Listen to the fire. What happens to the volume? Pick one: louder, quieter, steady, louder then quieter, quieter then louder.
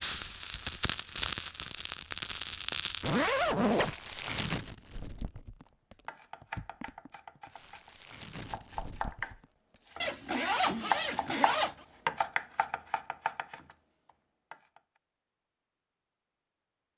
quieter.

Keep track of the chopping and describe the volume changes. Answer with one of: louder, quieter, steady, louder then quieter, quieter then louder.
louder then quieter.